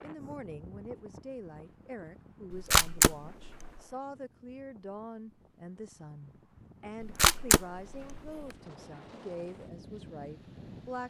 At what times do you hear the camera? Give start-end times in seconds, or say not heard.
2.5-3.7, 7.0-8.3.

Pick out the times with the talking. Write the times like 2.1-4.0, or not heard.
0.0-11.0.